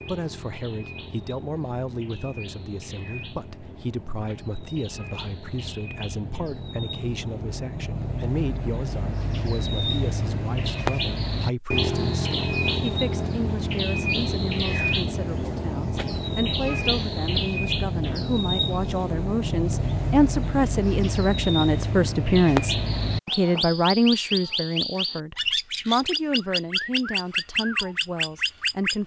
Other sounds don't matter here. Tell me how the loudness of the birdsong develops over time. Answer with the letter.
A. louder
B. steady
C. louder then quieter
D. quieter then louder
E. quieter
A.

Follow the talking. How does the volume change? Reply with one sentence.
The loudness of the talking goes up.